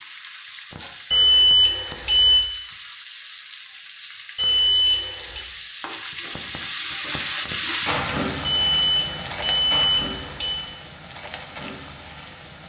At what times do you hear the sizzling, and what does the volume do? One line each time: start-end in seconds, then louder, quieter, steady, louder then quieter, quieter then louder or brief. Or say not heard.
0.0-12.6 louder then quieter.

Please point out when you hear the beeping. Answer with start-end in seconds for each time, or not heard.
1.1-2.5, 4.3-5.4, 8.4-10.7.